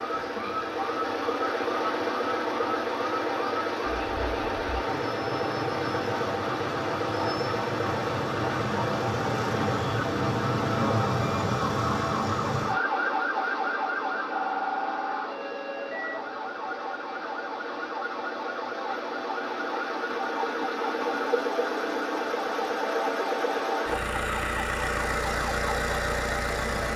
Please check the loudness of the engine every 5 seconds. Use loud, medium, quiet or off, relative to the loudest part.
loud, loud, loud, medium, loud, loud.